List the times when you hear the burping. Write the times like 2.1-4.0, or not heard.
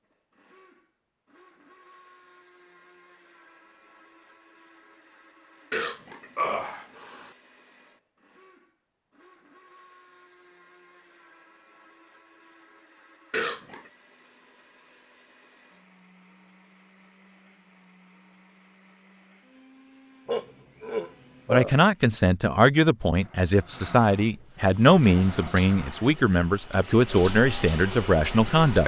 5.7-7.3, 13.3-13.9, 20.2-21.8.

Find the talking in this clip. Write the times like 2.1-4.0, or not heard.
21.5-28.8.